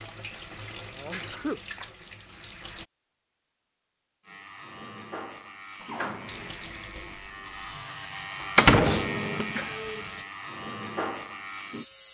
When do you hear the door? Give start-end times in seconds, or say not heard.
8.6-9.4.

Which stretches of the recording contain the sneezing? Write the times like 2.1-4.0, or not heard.
0.9-1.6, 5.8-6.3, 8.8-9.9.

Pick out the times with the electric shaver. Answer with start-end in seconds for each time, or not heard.
4.2-12.0.